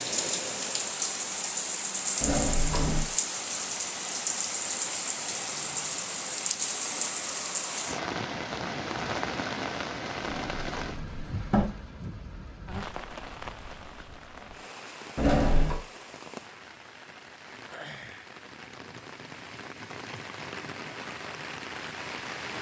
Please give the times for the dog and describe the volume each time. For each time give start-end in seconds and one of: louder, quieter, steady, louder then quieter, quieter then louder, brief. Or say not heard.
not heard.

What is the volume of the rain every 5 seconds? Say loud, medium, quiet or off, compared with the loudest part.
loud, loud, medium, quiet, medium.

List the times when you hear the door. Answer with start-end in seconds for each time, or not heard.
2.2-3.1, 10.2-11.7, 15.2-15.8.